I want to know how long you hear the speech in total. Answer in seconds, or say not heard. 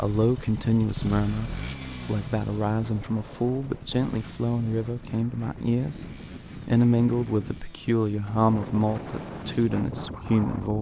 11 s.